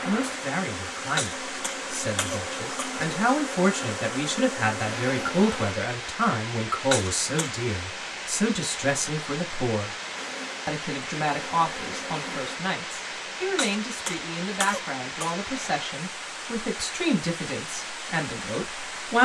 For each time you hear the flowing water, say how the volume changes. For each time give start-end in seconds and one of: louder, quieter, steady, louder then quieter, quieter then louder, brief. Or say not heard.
0.0-19.2 steady.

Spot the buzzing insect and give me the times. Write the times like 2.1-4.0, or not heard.
0.0-5.8, 10.2-12.6.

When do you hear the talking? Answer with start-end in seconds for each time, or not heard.
0.1-9.9, 10.7-19.2.